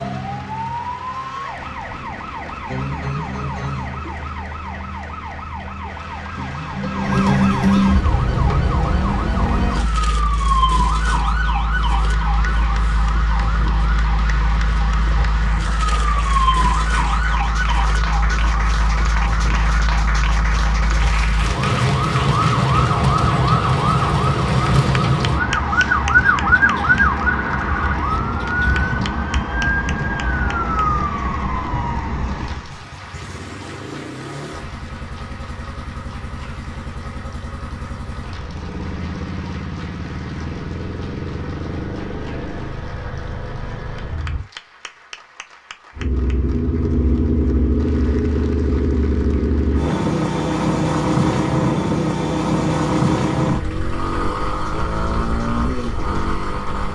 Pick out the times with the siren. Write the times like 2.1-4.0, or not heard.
0.0-32.6.